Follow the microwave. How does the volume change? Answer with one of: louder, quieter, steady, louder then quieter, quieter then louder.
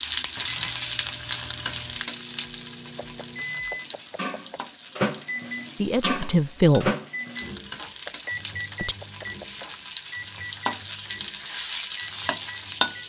louder then quieter.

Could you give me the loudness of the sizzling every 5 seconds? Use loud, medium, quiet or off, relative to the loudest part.
loud, medium, loud.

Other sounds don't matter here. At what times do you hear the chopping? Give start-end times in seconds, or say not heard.
3.0-4.7, 8.1-9.8.